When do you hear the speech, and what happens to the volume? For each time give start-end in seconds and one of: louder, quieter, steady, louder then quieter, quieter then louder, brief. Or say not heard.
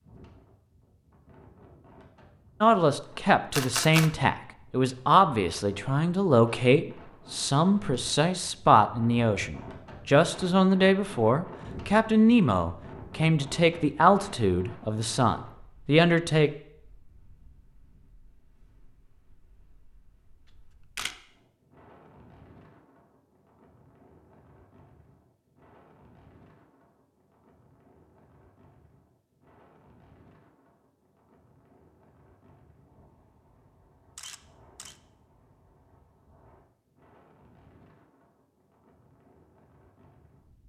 2.6-16.5 steady.